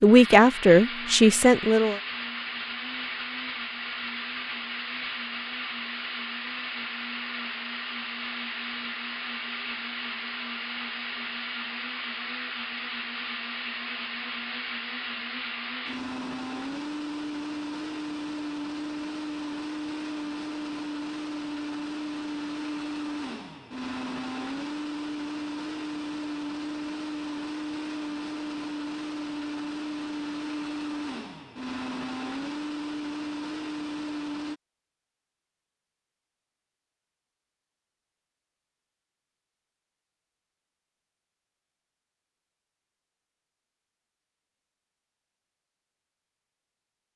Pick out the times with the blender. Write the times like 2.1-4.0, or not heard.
0.0-34.6.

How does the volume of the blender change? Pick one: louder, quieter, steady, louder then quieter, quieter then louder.
steady.